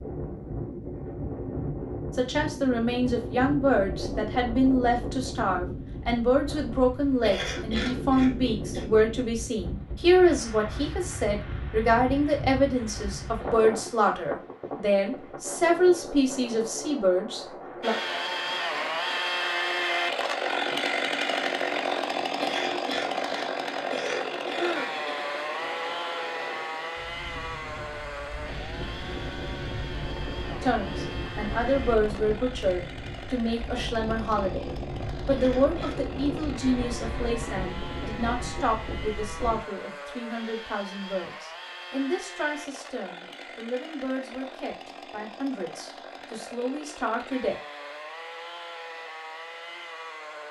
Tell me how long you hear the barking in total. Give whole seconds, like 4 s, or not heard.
not heard.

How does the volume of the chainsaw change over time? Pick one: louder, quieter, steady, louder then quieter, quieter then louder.
quieter.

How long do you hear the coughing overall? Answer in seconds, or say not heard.
5 s.